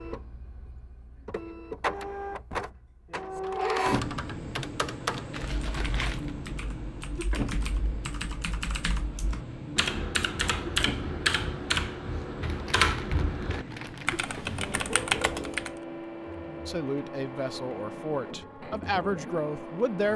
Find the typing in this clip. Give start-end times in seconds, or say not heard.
3.3-15.8.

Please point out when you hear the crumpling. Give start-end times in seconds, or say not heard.
5.3-6.3, 12.4-14.2.